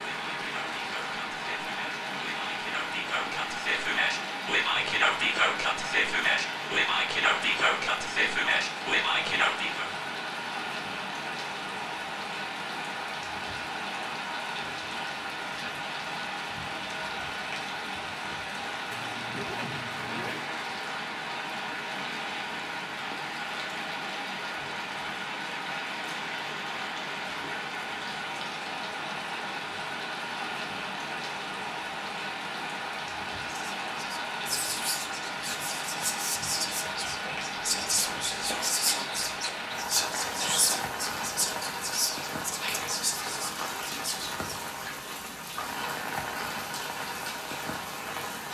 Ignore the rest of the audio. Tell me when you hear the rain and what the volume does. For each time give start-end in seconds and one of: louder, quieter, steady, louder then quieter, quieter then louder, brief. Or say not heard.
0.0-48.4 steady.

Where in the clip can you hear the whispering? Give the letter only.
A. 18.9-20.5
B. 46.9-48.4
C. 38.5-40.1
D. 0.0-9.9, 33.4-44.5
D.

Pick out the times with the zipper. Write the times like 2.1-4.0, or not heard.
18.9-20.5.